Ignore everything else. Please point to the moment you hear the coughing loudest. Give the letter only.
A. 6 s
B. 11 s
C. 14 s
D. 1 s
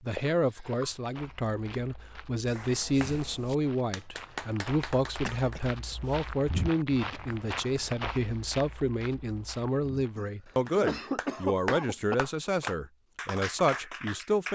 B.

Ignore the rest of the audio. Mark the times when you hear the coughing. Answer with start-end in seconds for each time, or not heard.
0.1-0.9, 5.1-6.2, 10.2-12.2.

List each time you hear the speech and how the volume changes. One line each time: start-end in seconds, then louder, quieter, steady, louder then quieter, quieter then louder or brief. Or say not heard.
0.0-14.5 steady.